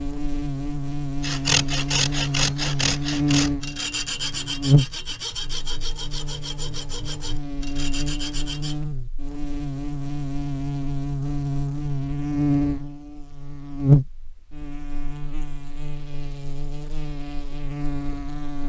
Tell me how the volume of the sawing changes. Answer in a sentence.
The loudness of the sawing goes down.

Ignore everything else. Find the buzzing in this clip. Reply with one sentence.
You can hear the buzzing from 0.0 to 18.6 s.